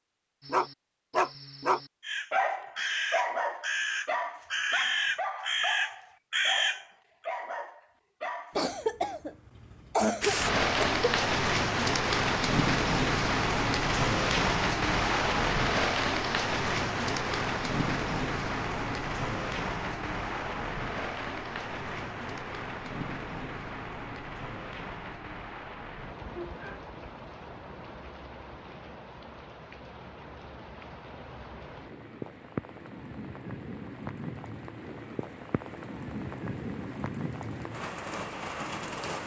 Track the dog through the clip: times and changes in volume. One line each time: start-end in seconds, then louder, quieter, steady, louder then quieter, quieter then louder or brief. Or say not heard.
0.5-8.6 quieter.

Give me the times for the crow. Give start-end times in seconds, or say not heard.
2.0-6.8.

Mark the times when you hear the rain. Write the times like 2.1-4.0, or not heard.
10.2-39.2.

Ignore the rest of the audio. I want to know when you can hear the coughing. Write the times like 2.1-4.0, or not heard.
8.6-11.1.